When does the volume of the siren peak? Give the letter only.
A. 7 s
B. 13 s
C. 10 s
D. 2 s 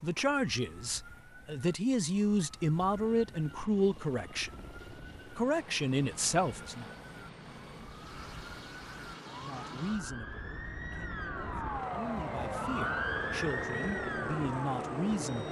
B.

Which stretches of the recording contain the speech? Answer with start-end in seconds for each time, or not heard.
0.0-4.7, 5.3-6.8, 9.3-15.4.